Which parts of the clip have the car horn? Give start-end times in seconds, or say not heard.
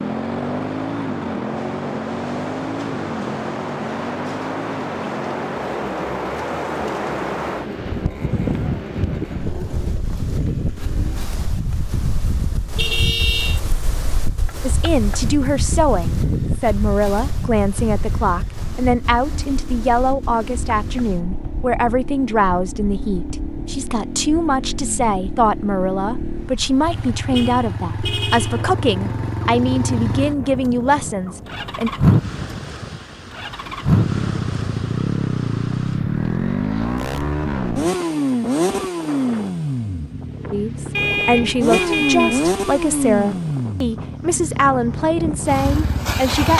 12.8-13.6, 27.3-28.6, 41.0-42.5.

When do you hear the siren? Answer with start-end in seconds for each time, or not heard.
not heard.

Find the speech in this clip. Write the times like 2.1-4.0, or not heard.
14.6-31.9, 40.5-46.5.